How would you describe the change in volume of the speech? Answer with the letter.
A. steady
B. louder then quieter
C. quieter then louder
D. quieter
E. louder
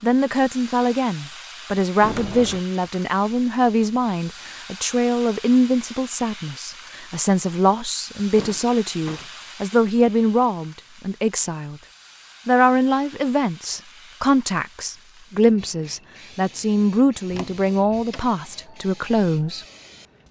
A.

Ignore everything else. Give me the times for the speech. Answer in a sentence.
The speech can be heard from 0.0 to 11.8 s and from 12.4 to 19.6 s.